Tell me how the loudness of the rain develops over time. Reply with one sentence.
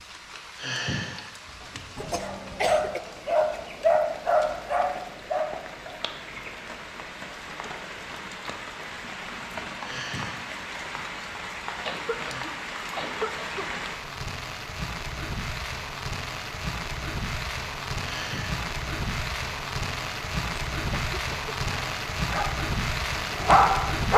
The loudness of the rain goes up.